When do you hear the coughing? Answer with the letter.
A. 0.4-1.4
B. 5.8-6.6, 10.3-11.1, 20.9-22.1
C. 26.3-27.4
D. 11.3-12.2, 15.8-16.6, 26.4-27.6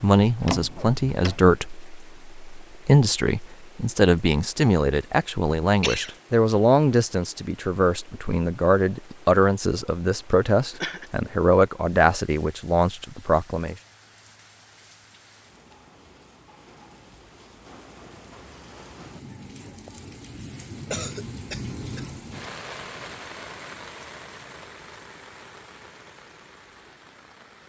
B.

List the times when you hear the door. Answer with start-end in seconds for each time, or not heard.
0.4-1.4.